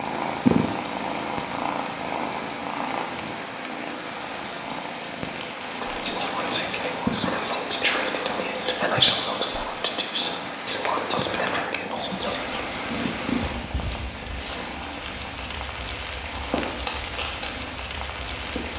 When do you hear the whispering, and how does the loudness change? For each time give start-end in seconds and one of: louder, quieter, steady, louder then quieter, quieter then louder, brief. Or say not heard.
5.6-12.8 steady.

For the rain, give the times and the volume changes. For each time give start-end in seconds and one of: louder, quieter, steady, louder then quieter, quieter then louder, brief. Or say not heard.
0.0-18.7 steady.